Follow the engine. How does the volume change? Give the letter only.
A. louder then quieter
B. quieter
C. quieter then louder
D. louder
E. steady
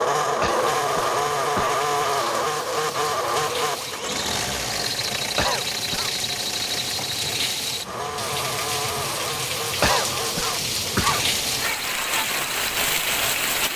B.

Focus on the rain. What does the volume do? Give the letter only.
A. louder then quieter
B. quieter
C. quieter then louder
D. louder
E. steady
D.